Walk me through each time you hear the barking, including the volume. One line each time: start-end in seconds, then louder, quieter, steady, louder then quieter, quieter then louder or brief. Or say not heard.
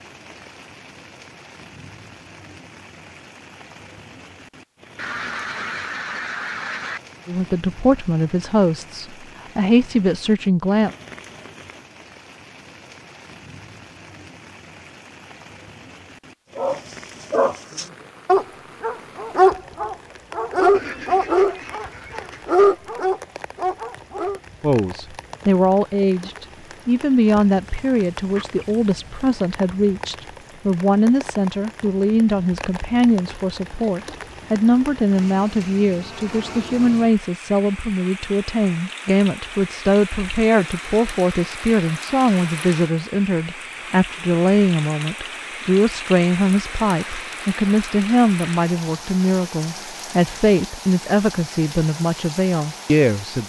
16.6-24.4 steady.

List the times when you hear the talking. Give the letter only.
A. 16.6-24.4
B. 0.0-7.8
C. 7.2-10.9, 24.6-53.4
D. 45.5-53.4
C.